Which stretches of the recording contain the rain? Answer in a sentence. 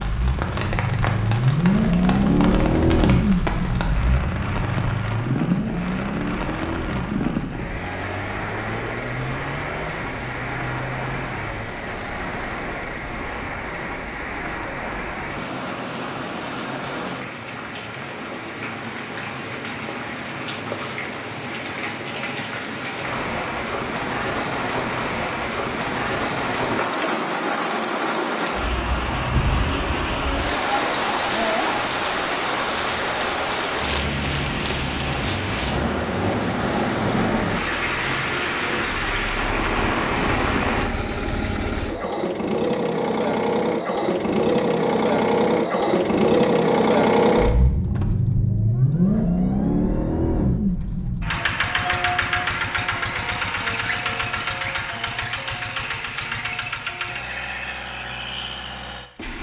The rain can be heard from 0.0 to 40.9 s.